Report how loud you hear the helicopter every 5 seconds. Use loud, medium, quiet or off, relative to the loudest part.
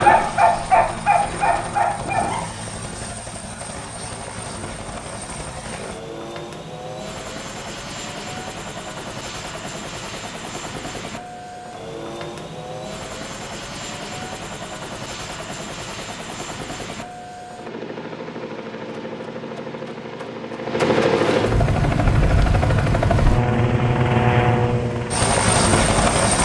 quiet, quiet, quiet, quiet, loud, loud.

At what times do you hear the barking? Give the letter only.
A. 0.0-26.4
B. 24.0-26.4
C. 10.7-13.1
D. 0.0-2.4
D.